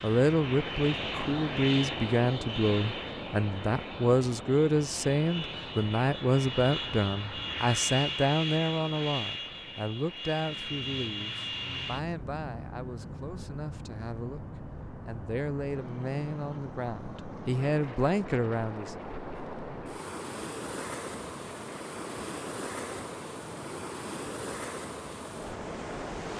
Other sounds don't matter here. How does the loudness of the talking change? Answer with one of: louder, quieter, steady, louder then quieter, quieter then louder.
quieter then louder.